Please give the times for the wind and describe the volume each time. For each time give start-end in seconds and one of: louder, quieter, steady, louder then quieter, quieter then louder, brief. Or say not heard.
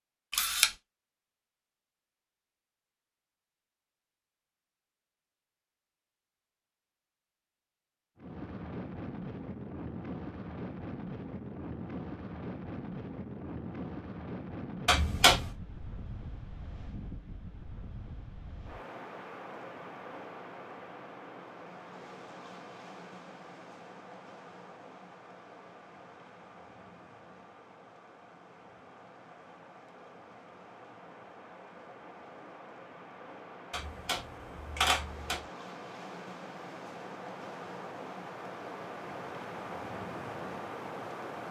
8.2-41.4 quieter then louder.